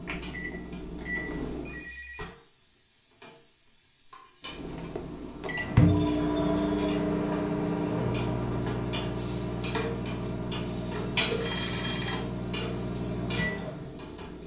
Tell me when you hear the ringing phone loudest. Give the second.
12 s.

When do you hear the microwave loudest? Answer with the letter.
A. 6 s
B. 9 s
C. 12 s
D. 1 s
A.